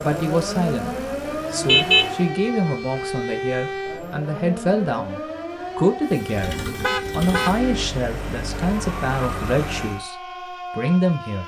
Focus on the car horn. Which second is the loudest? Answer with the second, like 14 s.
2 s.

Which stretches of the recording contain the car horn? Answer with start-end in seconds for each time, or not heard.
1.6-2.1, 6.5-7.5.